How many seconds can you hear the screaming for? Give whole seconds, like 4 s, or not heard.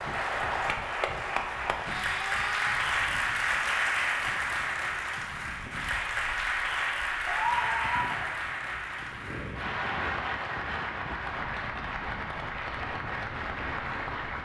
2 s.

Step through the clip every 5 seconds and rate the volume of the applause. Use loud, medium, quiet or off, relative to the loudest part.
loud, loud, medium.